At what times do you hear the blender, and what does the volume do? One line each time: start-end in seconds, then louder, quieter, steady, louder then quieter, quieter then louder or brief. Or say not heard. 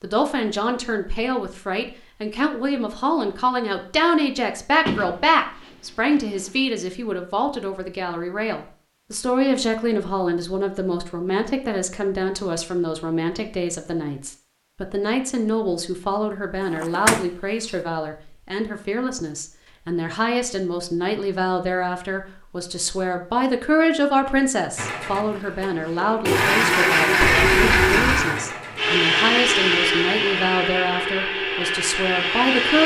24.8-32.8 louder then quieter.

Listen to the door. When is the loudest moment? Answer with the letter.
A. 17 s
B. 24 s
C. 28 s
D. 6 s
A.